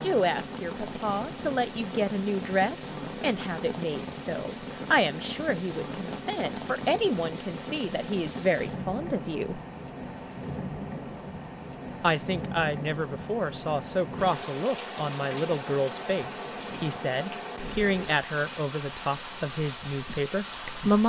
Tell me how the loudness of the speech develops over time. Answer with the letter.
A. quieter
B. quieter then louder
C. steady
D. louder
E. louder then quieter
C.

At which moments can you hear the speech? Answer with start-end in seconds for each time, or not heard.
0.0-9.6, 12.0-21.0.